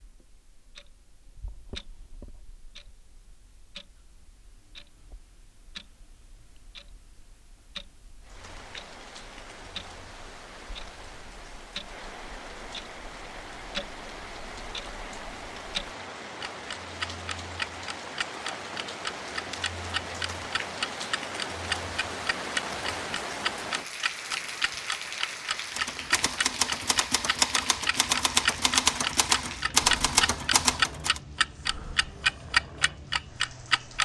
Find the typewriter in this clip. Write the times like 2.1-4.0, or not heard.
25.6-31.2.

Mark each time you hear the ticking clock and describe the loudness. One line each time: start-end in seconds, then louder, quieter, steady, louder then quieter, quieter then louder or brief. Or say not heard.
0.0-34.0 louder.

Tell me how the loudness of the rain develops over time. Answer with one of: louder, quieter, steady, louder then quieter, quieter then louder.
louder then quieter.